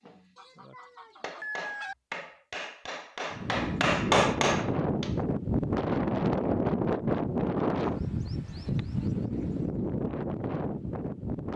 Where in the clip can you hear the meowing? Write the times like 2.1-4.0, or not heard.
not heard.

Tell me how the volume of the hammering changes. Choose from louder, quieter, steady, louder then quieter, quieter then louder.
louder.